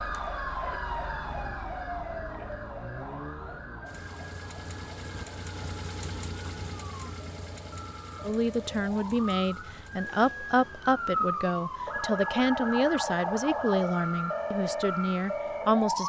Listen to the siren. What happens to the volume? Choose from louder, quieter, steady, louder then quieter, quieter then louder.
quieter then louder.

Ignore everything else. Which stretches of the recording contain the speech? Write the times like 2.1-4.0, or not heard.
8.2-16.0.